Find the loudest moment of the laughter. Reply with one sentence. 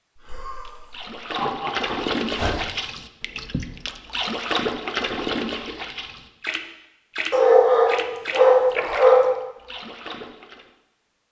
The loudest moment of the laughter is at 2 seconds.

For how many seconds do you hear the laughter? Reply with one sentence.
You can hear the laughter for 2 seconds altogether.